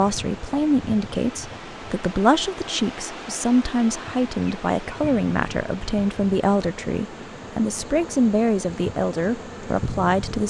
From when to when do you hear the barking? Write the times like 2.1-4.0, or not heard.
not heard.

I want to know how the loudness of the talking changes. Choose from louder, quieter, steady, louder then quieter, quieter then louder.
steady.